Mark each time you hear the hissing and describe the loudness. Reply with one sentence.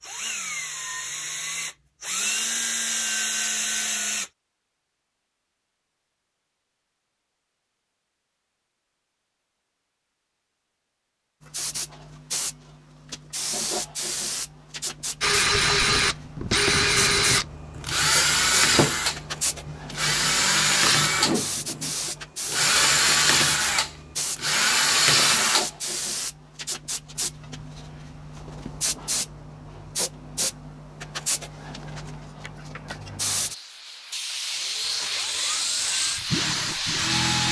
You can hear the hissing from 11.4 to 37.4 s, at a steady volume.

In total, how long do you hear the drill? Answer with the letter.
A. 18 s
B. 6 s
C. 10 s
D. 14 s
A.